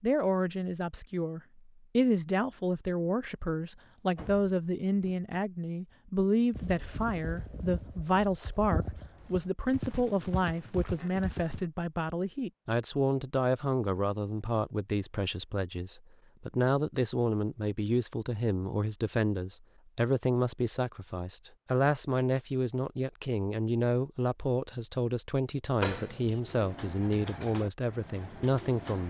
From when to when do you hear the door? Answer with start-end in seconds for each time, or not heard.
3.9-5.3, 25.8-26.4.